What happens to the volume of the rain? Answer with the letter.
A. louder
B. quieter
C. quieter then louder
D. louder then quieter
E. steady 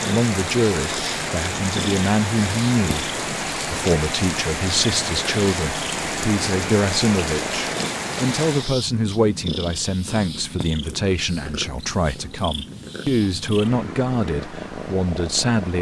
E.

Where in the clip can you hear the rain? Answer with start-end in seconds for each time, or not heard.
0.0-8.8.